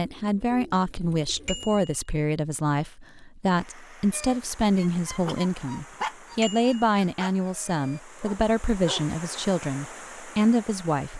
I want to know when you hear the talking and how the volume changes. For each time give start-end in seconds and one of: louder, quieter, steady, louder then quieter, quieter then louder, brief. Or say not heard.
0.0-11.1 steady.